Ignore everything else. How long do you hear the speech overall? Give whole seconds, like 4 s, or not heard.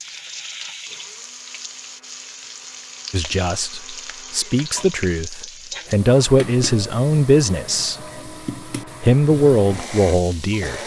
7 s.